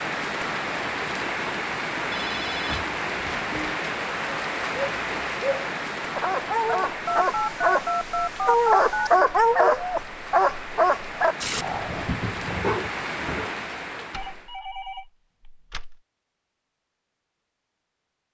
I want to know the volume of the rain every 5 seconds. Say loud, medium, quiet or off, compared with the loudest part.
loud, medium, medium, off.